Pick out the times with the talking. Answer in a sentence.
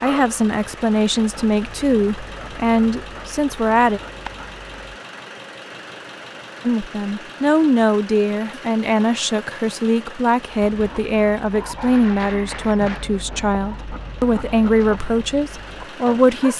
You can hear the talking from 0.0 to 4.0 s and from 6.7 to 16.5 s.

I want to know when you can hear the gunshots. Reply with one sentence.
You can't hear the gunshots here.